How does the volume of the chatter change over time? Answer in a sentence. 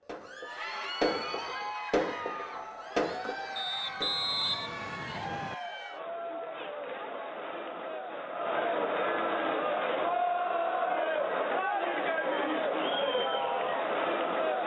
The loudness of the chatter goes up.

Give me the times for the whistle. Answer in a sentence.
You can hear the whistle from 3.5 to 5.5 s.